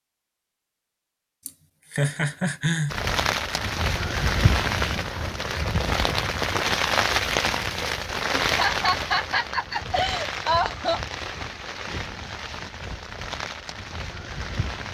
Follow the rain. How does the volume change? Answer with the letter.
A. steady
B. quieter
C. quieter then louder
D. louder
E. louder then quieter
B.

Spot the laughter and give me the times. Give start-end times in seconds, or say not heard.
1.4-3.0, 8.4-11.0.